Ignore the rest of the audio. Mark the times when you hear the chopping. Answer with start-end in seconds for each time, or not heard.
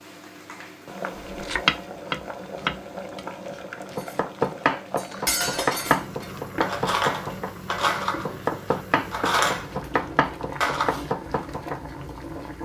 1.2-11.8.